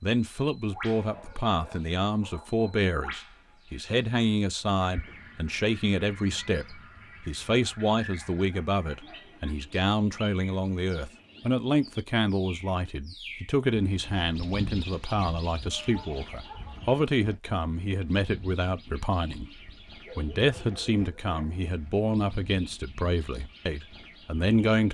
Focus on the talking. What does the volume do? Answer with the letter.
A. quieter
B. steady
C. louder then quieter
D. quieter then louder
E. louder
B.